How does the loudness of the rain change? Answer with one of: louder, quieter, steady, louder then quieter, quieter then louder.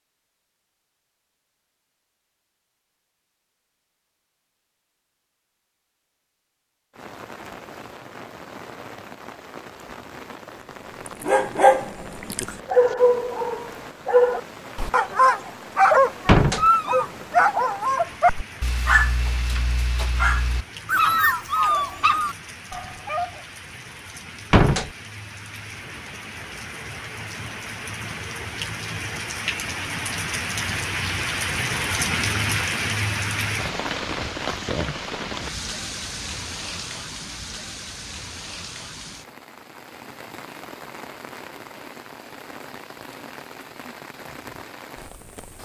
louder then quieter.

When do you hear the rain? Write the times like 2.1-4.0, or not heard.
6.9-45.5.